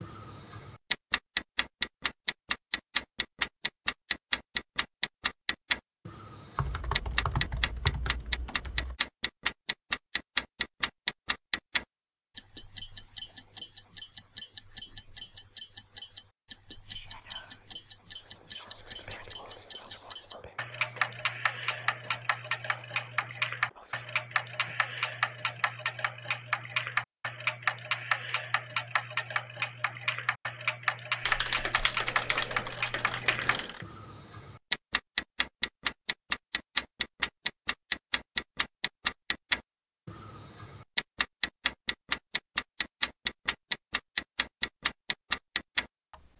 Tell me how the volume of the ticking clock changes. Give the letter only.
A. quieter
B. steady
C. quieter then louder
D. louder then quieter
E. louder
B.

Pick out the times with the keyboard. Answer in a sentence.
You can hear the keyboard from 6.5 to 9.0 s and from 31.2 to 33.9 s.